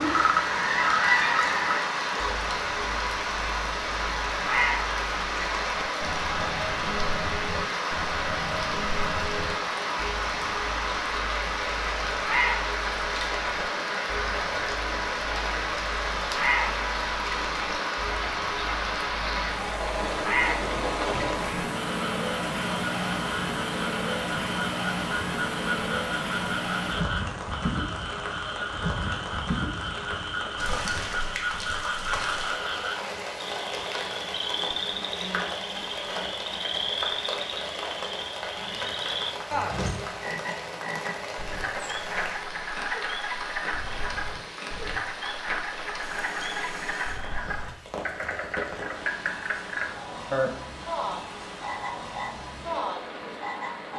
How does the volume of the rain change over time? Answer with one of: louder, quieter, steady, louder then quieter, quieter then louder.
quieter.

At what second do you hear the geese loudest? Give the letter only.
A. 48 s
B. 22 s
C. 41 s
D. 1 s
D.